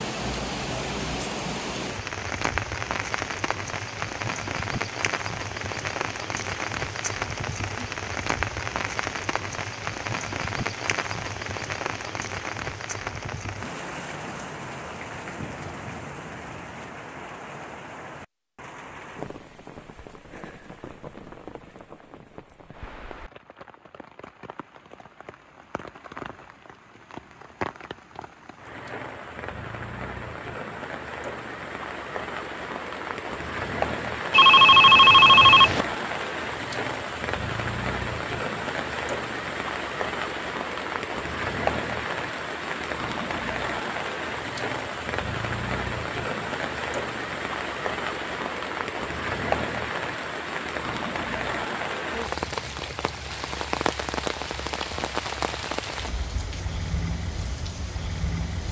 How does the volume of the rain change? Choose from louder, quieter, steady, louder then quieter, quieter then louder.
quieter then louder.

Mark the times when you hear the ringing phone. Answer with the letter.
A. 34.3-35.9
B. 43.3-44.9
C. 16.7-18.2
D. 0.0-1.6
A.